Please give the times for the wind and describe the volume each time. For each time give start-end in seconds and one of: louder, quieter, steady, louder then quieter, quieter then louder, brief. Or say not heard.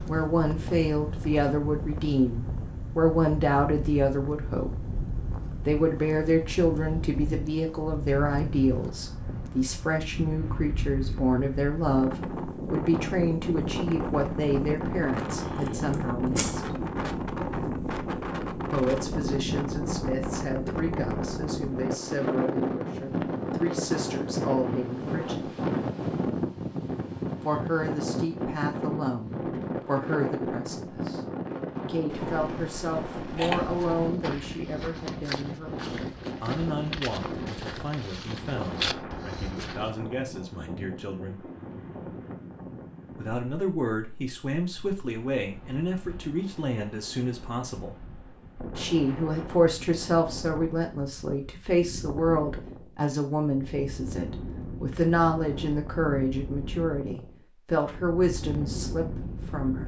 0.0-59.8 louder then quieter.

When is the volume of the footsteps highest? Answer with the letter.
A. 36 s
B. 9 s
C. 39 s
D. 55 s
C.